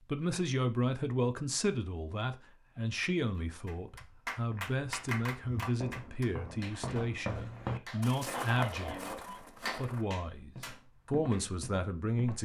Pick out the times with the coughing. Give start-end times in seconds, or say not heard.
7.7-9.4.